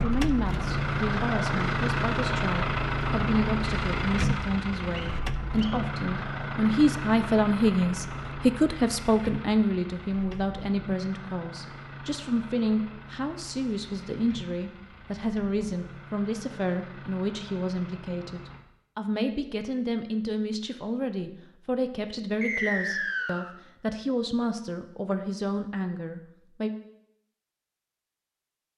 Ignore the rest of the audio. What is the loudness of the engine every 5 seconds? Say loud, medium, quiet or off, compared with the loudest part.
loud, medium, quiet, quiet, off, off.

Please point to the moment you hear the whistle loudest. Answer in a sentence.
The volume of the whistle peaks at 23 seconds.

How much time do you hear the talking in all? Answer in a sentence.
The talking can be heard for 27 seconds in total.